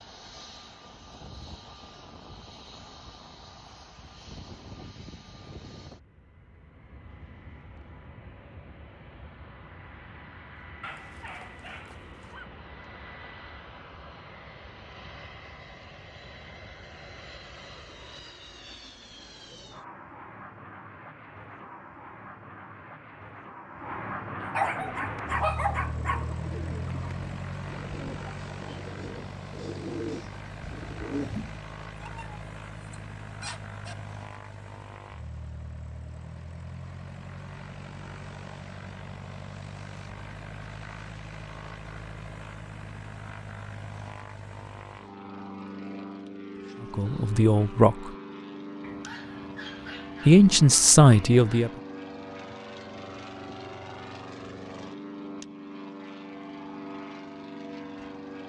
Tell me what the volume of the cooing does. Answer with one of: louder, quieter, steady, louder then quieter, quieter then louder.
louder.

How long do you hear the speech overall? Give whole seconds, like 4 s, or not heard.
3 s.